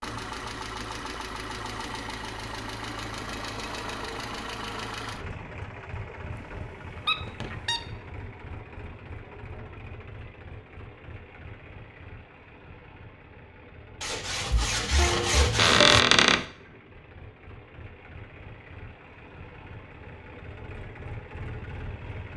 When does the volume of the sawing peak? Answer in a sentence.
The loudest moment of the sawing is at 16 seconds.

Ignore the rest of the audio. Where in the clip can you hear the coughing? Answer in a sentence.
You can't hear the coughing here.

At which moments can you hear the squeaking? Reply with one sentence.
You can hear the squeaking from 6.3 to 7.8 s and from 15.6 to 16.4 s.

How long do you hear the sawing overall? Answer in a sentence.
You can hear the sawing for 2 seconds altogether.